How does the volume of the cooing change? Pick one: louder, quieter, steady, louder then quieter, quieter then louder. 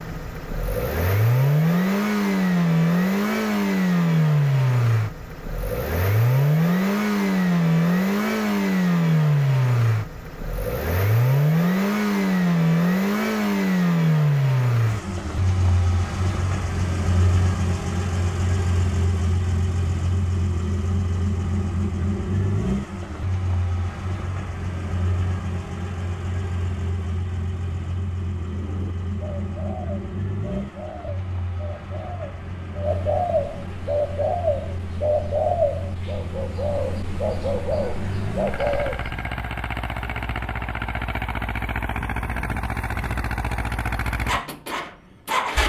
louder.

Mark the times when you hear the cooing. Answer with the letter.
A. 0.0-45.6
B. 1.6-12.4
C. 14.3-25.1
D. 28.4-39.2
D.